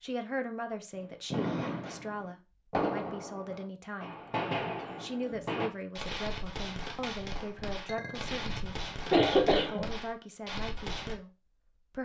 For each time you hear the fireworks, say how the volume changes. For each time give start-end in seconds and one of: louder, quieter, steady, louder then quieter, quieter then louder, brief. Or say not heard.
0.9-11.2 quieter.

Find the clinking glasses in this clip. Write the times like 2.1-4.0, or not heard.
7.8-8.5.